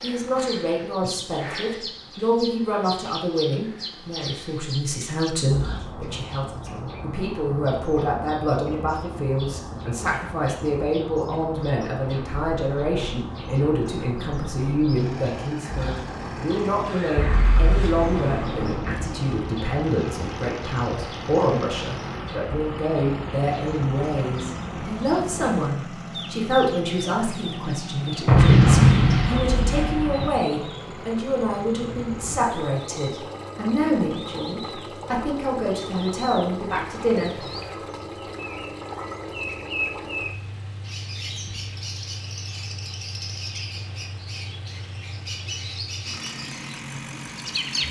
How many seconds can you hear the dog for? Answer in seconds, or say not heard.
not heard.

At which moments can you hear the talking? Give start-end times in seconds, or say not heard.
0.0-37.3.